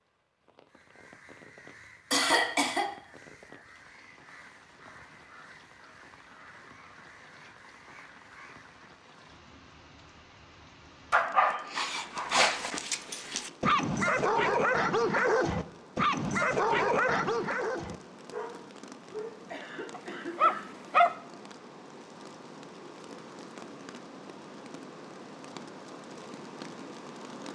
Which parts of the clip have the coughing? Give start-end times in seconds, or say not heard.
2.1-2.9, 19.3-20.7.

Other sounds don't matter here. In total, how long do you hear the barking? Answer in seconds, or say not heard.
10 s.